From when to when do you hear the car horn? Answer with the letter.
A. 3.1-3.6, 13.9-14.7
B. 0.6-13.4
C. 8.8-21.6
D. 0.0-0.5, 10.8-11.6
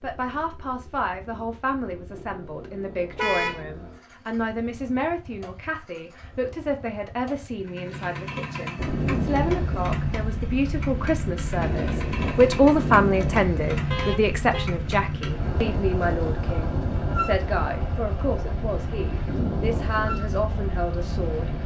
A.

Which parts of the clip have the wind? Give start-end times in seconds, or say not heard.
8.8-21.6.